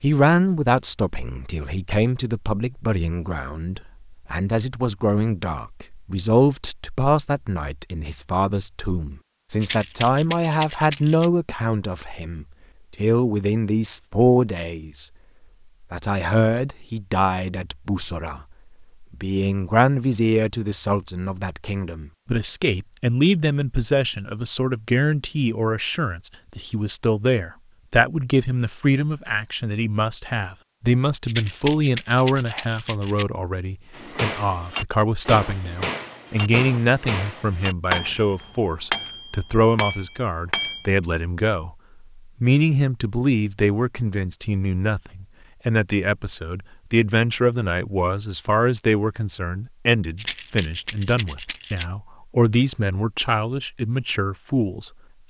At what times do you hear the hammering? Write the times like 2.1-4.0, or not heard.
34.0-40.9.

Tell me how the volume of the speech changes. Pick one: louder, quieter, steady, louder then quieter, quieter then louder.
steady.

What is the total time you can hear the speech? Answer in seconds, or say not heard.
54 s.